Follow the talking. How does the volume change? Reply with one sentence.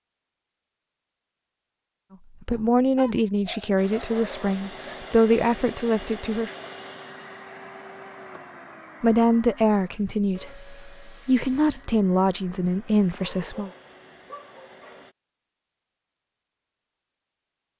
The loudness of the talking stays about the same.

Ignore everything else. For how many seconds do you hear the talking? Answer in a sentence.
The talking can be heard for 9 seconds in total.